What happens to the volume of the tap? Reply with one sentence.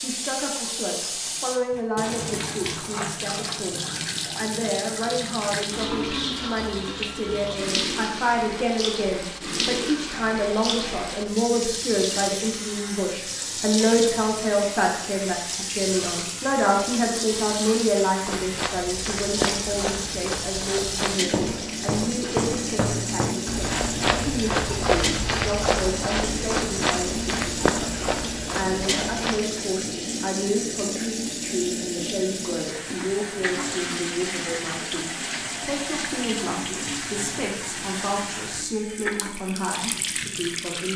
The volume of the tap stays about the same.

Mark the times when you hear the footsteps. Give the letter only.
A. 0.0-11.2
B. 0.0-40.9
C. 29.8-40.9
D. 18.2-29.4
D.